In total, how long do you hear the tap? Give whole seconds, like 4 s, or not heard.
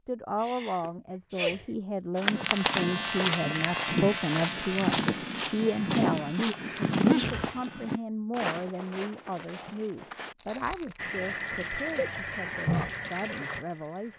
3 s.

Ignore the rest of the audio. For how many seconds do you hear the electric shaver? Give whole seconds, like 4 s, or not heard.
6 s.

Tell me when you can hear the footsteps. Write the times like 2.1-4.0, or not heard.
2.1-11.0.